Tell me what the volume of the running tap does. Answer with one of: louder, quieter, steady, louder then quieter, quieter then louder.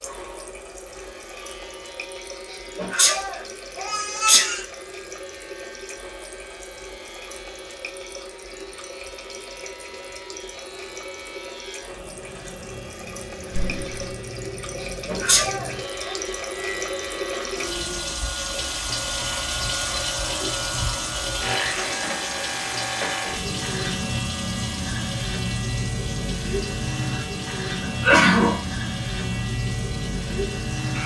louder then quieter.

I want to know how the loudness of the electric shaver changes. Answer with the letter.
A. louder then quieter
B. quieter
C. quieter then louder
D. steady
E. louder
E.